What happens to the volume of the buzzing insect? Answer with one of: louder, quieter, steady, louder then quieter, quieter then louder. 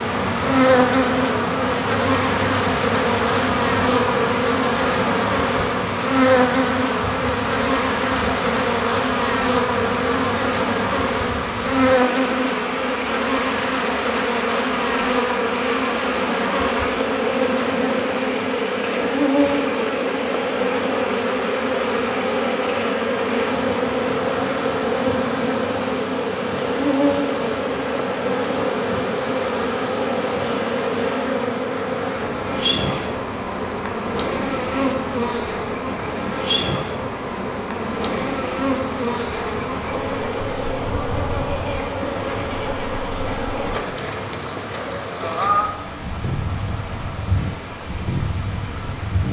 quieter.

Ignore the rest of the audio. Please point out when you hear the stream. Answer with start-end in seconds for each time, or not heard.
0.0-49.2.